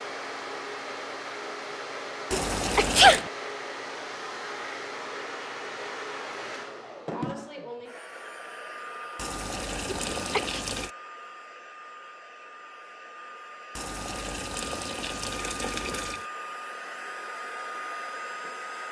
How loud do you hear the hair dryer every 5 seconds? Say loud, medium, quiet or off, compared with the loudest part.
loud, loud, medium, loud.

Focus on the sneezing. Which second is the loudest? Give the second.
3 s.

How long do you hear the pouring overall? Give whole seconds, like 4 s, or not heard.
5 s.